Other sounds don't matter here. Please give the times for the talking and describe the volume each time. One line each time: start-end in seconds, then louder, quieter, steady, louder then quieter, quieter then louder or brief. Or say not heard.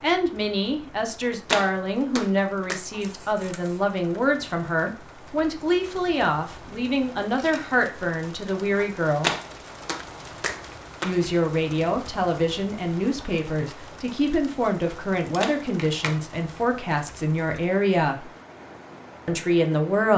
0.0-9.3 steady
11.0-18.2 steady
19.2-20.1 brief.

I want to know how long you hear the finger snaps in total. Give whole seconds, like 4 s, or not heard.
4 s.